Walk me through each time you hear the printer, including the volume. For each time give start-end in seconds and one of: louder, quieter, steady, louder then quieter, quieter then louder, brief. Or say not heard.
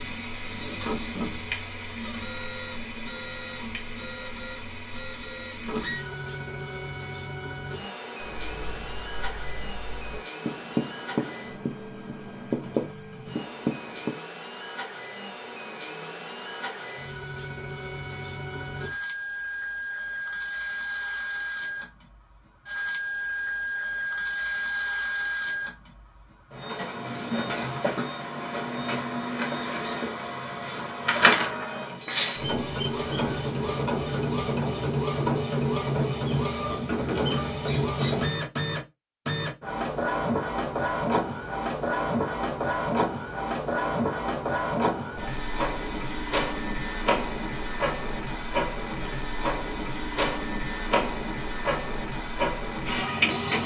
0.0-53.6 louder.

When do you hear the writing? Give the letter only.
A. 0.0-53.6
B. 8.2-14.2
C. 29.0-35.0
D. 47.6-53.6
B.